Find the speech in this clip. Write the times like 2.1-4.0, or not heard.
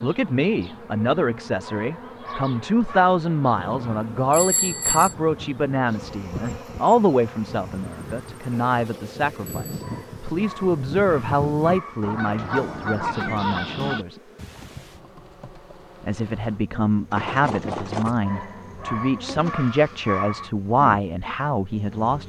0.0-14.2, 16.0-22.2.